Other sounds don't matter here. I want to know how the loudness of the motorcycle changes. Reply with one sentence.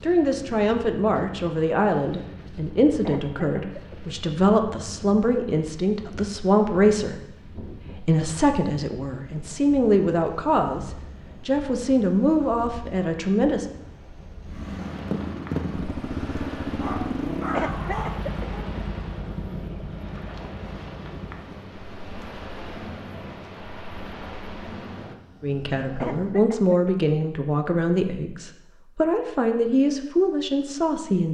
The loudness of the motorcycle goes down.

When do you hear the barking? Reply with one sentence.
The barking can be heard from 16.8 to 18.6 s.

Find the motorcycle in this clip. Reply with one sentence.
The motorcycle can be heard from 14.4 to 26.4 s.